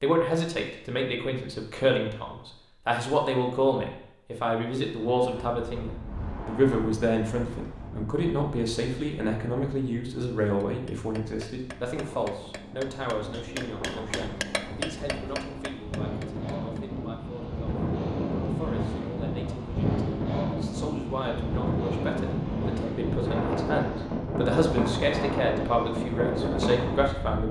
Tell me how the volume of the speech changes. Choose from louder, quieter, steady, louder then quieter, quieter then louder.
quieter then louder.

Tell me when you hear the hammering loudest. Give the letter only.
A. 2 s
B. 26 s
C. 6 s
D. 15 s
D.